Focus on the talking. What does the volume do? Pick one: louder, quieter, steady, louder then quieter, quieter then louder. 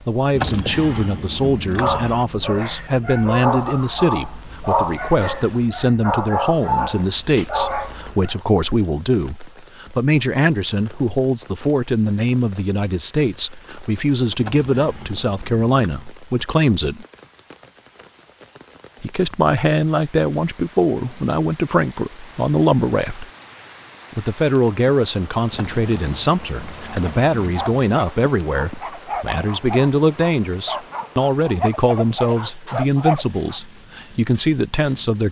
steady.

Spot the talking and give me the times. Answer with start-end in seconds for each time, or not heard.
0.1-17.1, 19.0-23.2, 24.1-35.2.